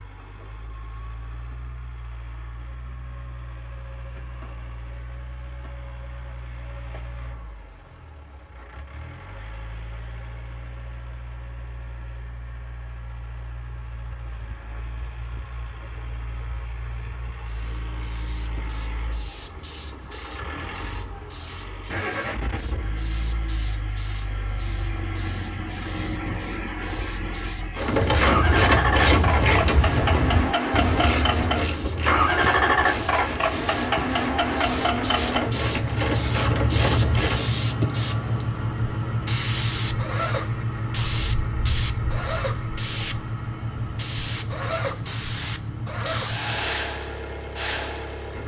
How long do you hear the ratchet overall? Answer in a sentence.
You can hear the ratchet for 10 seconds altogether.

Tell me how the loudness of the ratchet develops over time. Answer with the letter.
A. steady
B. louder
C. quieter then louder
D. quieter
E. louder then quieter
C.